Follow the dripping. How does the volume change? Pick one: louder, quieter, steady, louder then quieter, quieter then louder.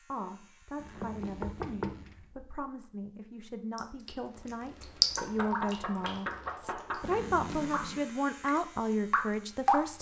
quieter then louder.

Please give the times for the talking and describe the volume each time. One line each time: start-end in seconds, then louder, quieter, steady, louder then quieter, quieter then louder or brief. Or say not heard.
0.1-9.9 louder.